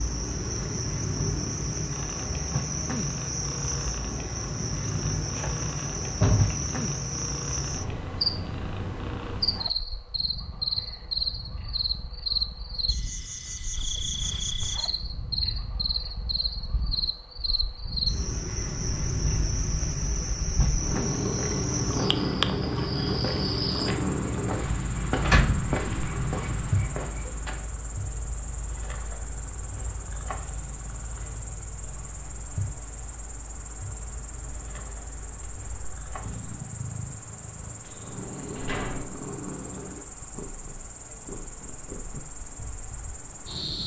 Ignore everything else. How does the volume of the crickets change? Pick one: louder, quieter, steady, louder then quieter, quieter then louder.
quieter.